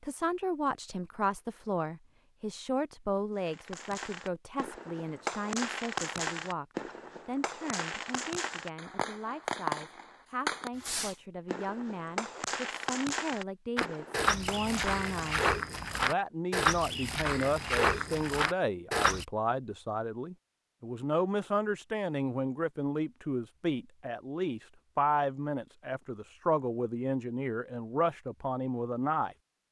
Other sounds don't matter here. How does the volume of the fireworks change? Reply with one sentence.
The volume of the fireworks stays about the same.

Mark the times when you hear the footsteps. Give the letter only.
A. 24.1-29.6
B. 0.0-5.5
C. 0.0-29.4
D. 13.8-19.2
D.